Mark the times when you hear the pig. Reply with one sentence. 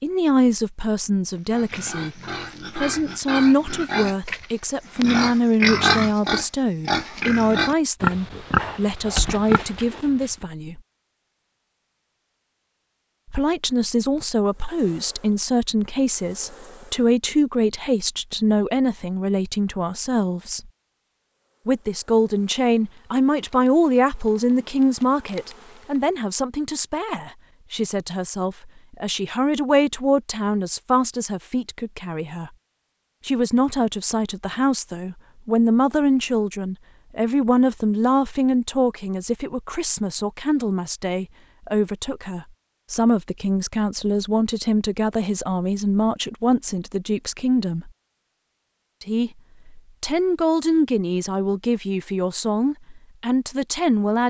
The pig can be heard from 1.5 to 10.3 s.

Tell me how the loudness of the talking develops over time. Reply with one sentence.
The loudness of the talking stays about the same.